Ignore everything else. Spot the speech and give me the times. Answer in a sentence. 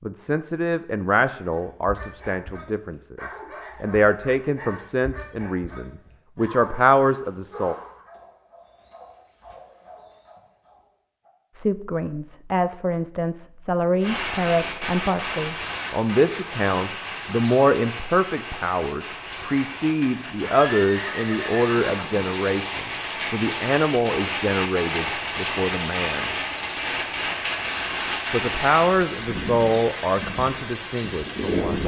You can hear the speech from 0.0 to 7.8 s, from 11.5 to 26.3 s and from 28.3 to 31.8 s.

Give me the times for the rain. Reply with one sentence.
The rain can be heard from 14.0 to 31.8 s.